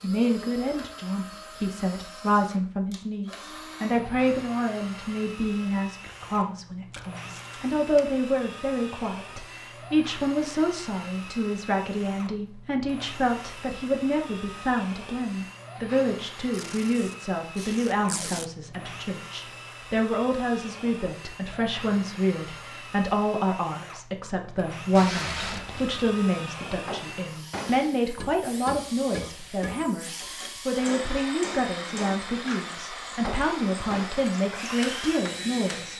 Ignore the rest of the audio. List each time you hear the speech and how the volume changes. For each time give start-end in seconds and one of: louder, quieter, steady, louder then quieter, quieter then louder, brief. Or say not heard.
0.0-35.9 steady.